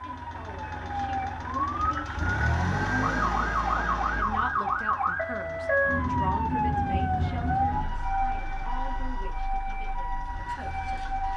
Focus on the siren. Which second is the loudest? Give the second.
6 s.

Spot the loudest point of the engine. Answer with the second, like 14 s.
3 s.